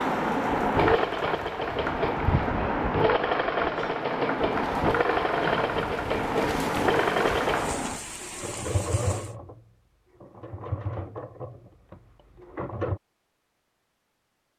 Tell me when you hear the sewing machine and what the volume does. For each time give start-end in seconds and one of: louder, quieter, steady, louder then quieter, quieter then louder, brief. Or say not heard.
0.0-13.0 quieter.